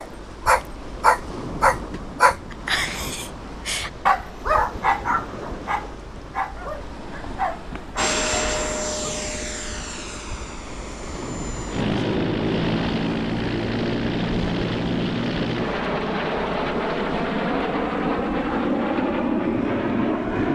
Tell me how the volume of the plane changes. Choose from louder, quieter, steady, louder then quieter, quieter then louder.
louder.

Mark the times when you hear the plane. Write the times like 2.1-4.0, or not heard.
8.0-20.5.